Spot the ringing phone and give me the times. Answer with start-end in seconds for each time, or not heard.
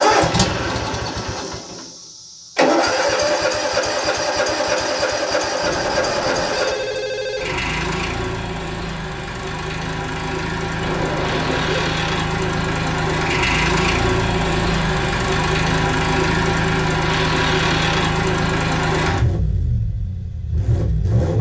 5.6-7.5, 10.8-11.9.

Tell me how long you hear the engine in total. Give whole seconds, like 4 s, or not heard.
21 s.